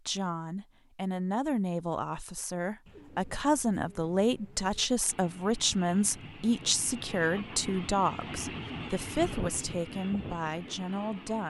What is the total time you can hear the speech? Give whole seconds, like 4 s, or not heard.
11 s.